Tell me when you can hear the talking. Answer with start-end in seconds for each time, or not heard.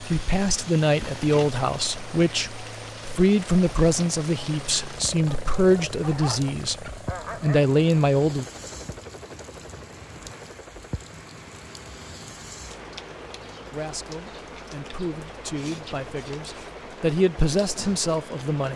0.0-8.4, 13.7-18.7.